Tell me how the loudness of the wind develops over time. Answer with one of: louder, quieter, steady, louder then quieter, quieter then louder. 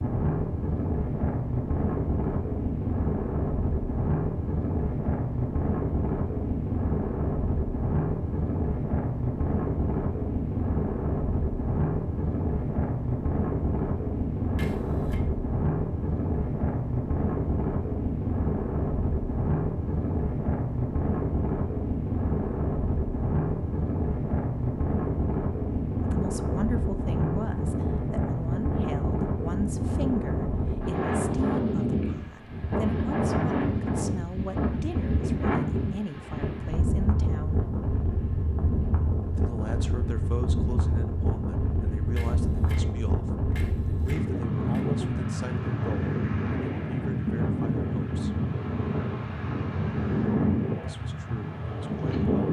steady.